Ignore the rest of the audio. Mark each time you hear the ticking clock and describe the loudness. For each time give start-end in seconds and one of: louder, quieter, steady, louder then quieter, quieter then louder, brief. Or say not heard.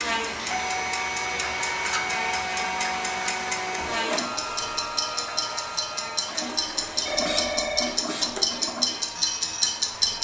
0.0-10.2 louder.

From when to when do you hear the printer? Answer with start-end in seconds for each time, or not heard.
0.0-9.9.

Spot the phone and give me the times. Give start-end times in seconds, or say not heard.
7.0-8.0.